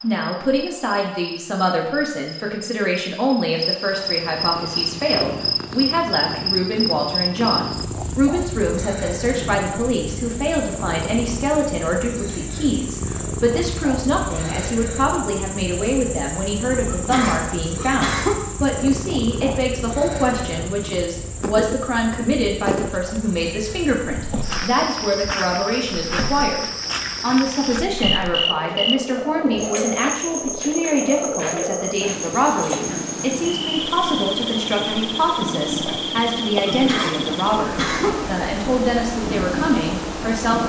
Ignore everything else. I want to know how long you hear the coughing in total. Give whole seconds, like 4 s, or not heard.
3 s.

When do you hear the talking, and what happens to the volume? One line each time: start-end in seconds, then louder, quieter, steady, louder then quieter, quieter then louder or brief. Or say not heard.
0.0-40.6 steady.